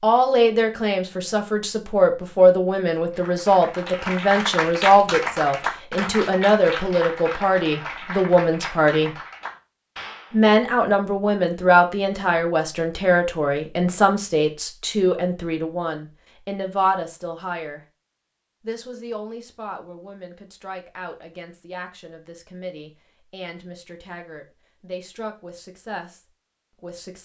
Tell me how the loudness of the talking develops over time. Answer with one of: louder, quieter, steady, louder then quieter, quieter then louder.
quieter.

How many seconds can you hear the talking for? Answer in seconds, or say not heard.
25 s.